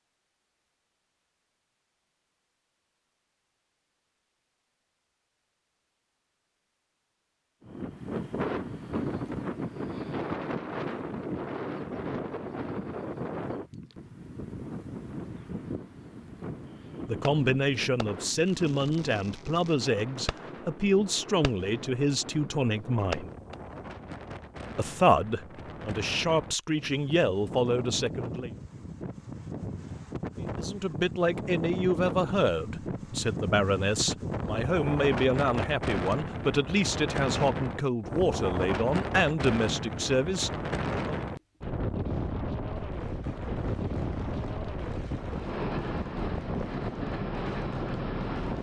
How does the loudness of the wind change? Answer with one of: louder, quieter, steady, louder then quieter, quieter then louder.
quieter then louder.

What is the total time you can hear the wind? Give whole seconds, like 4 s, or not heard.
41 s.